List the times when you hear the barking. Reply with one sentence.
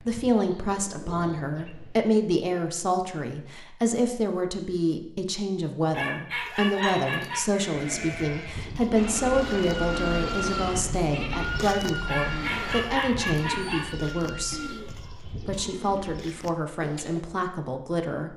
The barking can be heard from 5.9 to 7.5 s and from 12.1 to 13.9 s.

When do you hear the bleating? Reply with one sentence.
The bleating can be heard from 6.7 to 14.8 s.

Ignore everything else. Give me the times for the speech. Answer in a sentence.
You can hear the speech from 0.0 to 18.3 s.